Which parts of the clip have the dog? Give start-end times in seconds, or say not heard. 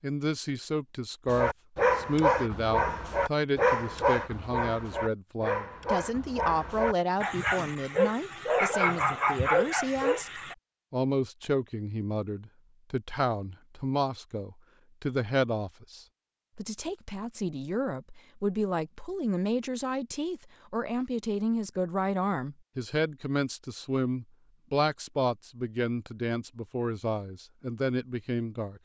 1.2-10.6.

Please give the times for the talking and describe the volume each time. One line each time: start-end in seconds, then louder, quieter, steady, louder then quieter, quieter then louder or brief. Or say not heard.
0.0-28.8 steady.